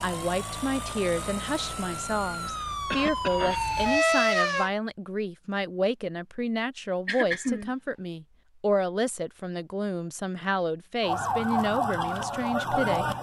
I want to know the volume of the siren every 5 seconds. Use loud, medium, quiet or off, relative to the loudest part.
loud, off, loud.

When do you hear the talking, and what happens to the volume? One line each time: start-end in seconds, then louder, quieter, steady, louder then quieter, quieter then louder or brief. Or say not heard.
0.0-13.1 steady.